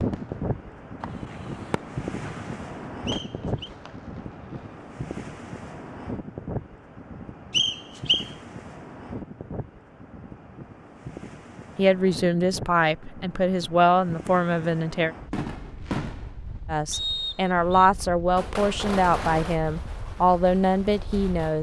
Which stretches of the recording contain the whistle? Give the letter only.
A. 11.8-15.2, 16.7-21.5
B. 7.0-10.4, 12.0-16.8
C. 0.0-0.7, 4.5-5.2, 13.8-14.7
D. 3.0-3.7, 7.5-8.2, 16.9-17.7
D.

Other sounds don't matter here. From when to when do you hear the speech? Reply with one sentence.
You can hear the speech from 11.8 to 15.2 s and from 16.7 to 21.5 s.